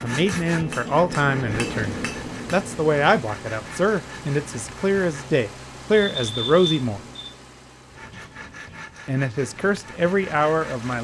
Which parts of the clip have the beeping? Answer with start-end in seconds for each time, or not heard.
6.0-7.3.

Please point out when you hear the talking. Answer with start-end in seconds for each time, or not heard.
0.0-7.0, 9.1-10.9.